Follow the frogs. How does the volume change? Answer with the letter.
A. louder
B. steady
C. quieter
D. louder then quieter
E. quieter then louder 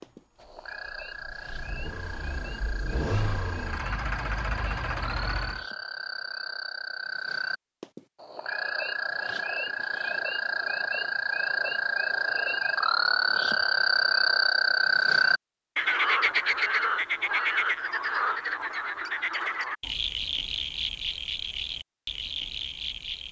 D.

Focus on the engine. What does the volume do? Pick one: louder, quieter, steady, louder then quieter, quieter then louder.
louder.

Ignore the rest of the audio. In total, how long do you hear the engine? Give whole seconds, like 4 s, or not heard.
6 s.